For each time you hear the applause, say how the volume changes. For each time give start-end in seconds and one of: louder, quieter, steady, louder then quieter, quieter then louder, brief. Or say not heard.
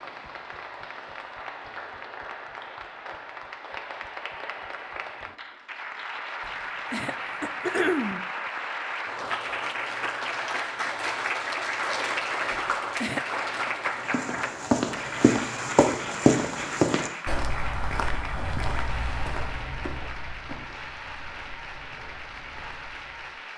0.0-23.5 louder then quieter.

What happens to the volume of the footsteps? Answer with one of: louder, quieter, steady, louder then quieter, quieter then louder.
quieter.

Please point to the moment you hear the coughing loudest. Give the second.
8 s.